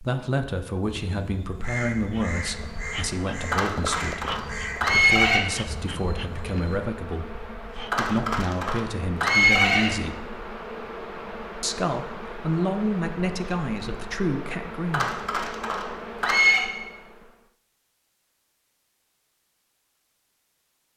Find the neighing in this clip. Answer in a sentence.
You can hear the neighing from 3.5 to 5.4 s, from 7.9 to 9.9 s and from 14.9 to 16.6 s.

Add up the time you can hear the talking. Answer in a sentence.
The talking can be heard for 14 seconds in total.